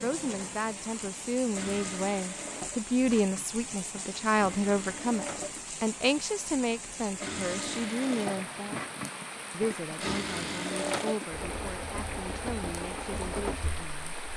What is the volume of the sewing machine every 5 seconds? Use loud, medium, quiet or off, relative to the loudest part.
medium, loud, loud.